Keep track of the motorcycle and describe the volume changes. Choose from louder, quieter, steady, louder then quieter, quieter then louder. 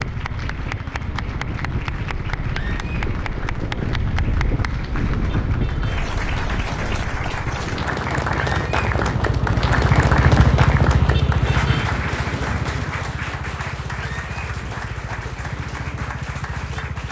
louder then quieter.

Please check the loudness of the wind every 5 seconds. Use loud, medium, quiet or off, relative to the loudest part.
loud, loud, loud, off.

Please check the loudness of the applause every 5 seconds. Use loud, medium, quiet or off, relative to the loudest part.
medium, loud, loud, medium.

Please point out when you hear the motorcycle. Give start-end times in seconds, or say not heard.
0.0-17.0.